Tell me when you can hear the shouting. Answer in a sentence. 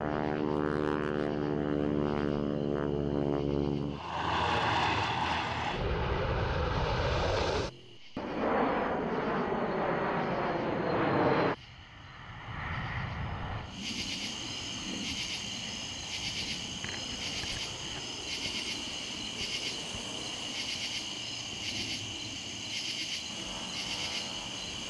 The shouting can't be heard in this clip.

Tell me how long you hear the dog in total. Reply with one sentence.
The dog can't be heard in this clip.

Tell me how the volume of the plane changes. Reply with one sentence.
The volume of the plane goes down.